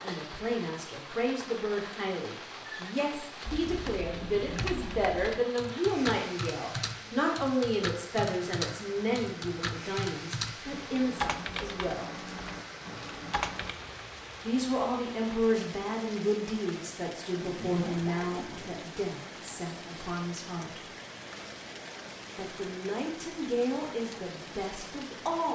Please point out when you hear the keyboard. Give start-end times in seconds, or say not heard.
3.5-13.8.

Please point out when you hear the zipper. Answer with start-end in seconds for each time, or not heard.
4.2-4.8, 17.4-18.8.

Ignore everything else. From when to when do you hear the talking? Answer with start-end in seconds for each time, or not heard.
0.0-12.2, 14.4-20.8, 22.4-25.5.